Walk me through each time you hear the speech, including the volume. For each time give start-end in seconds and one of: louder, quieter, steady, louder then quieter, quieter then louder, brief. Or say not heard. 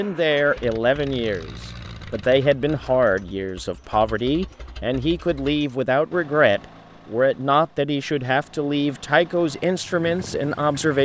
0.0-11.0 steady.